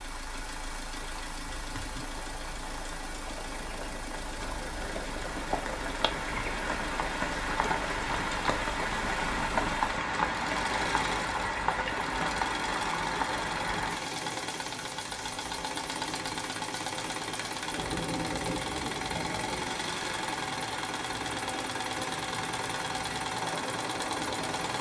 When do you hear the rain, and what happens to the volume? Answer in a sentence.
The rain can be heard from 0.0 to 24.7 s, getting louder then quieter.